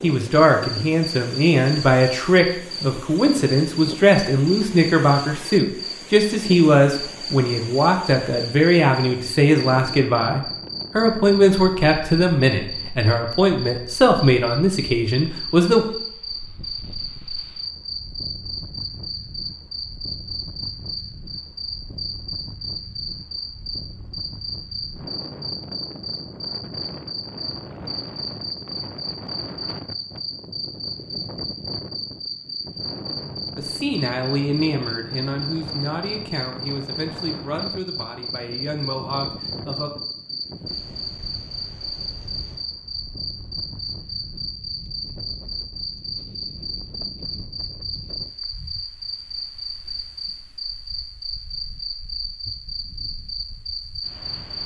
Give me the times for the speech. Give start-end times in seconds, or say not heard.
0.0-15.8, 33.5-39.9.